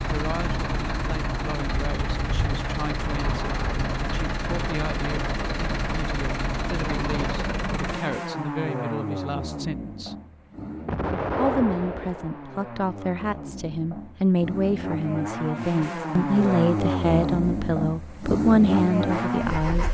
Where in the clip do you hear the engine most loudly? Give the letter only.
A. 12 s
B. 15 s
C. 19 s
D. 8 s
C.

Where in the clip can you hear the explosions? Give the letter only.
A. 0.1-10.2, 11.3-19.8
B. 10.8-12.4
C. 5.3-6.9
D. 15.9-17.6
B.